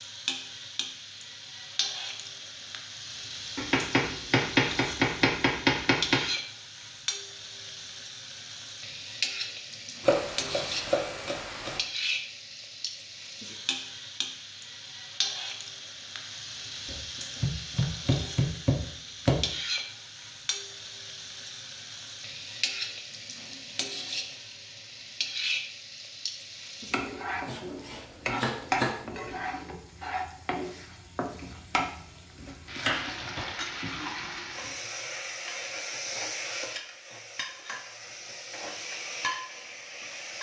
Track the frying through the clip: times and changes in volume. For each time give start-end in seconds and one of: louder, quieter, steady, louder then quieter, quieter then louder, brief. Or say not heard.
0.0-40.3 steady.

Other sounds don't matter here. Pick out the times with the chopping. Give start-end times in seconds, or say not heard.
3.5-6.2, 10.0-11.8, 16.9-19.5, 27.4-29.1, 32.8-34.7.